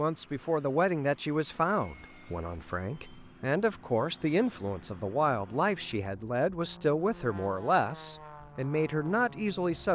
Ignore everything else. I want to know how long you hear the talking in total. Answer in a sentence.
You can hear the talking for 10 seconds altogether.